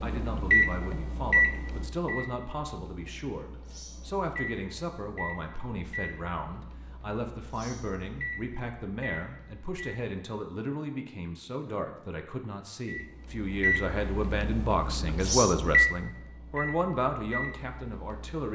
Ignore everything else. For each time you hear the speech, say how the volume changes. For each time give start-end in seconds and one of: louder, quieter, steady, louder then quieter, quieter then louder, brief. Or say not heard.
0.0-18.5 louder.